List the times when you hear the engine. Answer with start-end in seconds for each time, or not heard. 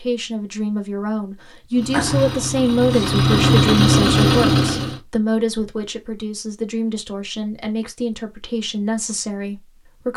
1.8-5.0.